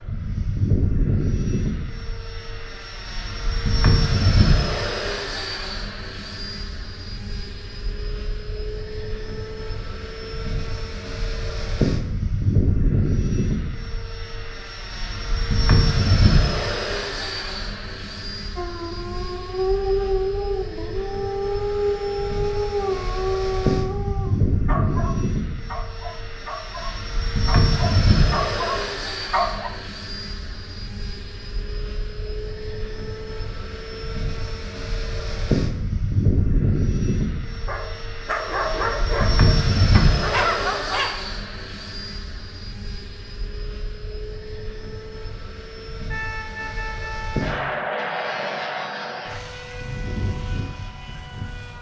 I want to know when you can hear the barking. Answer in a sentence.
You can hear the barking from 18.6 to 29.7 s and from 37.6 to 41.1 s.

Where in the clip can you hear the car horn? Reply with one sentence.
You can hear the car horn from 46.0 to 47.4 s.